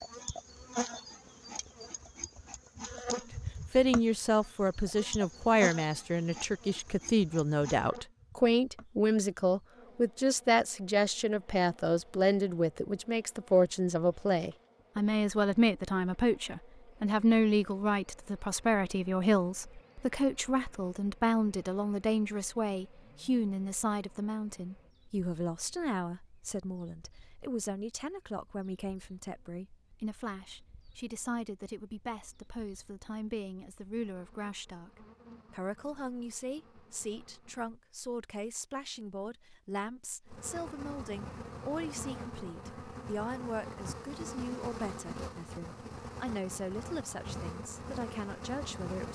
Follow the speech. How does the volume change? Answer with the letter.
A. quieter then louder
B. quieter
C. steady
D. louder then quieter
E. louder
B.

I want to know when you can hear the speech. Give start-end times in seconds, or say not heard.
3.1-49.1.